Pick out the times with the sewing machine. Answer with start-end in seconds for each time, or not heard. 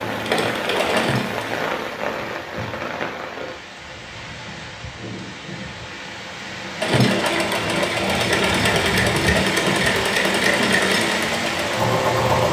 0.0-1.6, 6.8-12.4.